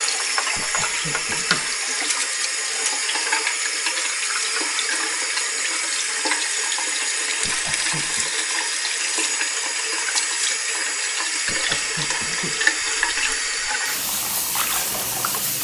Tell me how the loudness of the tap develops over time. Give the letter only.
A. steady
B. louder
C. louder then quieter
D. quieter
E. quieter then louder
A.